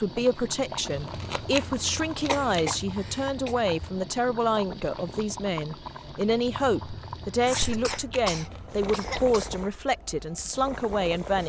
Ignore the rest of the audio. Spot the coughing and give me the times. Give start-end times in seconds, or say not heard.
2.2-3.5, 7.5-9.5.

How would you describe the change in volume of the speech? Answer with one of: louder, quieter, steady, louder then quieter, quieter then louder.
steady.